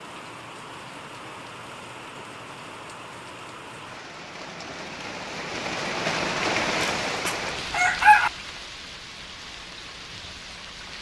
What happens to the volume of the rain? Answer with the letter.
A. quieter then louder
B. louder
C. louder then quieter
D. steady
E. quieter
C.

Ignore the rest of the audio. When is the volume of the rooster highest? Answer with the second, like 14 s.
8 s.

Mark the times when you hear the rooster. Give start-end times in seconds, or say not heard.
6.8-8.3.